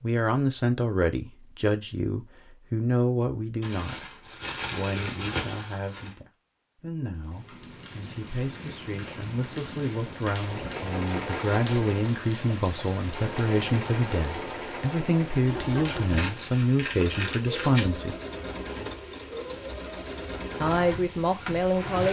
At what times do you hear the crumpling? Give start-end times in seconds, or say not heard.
3.6-6.2, 15.8-17.9.